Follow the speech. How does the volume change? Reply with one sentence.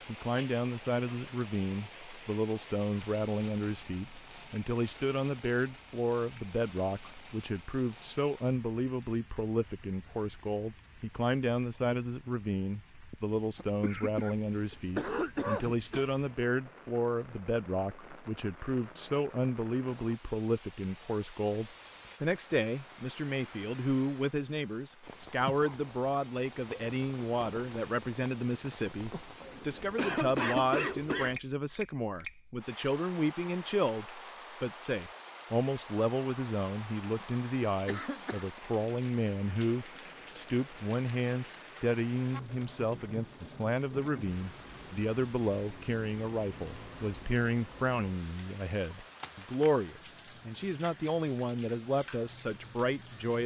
The loudness of the speech stays about the same.